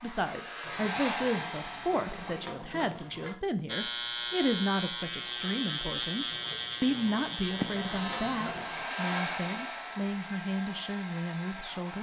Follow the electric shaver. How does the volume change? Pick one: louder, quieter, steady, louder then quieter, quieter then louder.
steady.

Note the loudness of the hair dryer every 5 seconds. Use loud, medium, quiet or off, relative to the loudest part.
loud, loud, medium.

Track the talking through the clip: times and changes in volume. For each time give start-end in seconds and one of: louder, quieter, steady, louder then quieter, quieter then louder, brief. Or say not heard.
0.0-11.9 steady.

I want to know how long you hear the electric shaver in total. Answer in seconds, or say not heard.
5 s.